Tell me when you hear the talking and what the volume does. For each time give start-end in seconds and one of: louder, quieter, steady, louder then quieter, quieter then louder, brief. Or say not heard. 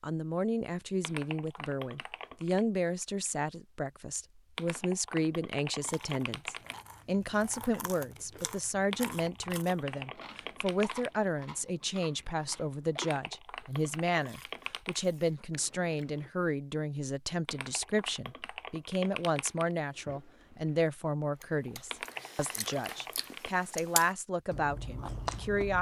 0.0-25.7 steady.